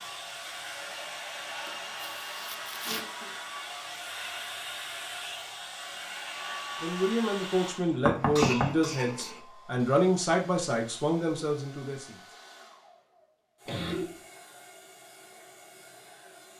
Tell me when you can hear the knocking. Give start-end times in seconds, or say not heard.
8.1-9.3.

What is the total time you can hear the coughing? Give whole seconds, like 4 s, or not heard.
4 s.